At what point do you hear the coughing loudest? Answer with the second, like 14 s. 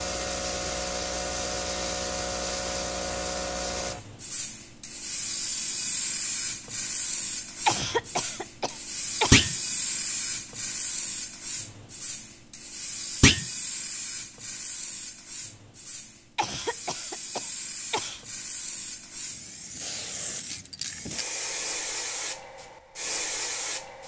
8 s.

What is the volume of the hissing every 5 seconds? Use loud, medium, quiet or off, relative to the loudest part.
loud, loud, loud, medium, loud.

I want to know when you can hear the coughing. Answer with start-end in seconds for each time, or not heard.
7.7-9.5, 16.4-18.2.